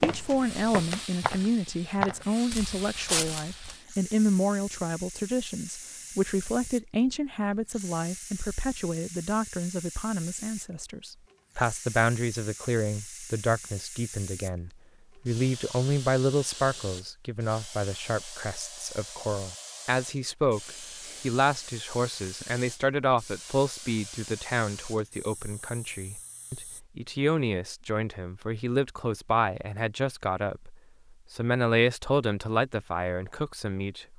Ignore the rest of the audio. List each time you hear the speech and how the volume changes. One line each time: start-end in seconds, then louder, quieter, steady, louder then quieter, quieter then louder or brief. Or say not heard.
0.0-34.1 steady.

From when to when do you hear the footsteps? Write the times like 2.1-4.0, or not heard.
0.0-3.8.